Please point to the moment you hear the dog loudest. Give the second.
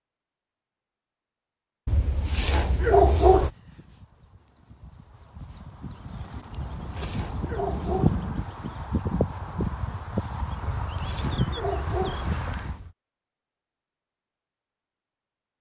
3 s.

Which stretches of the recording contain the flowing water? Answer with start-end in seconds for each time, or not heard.
not heard.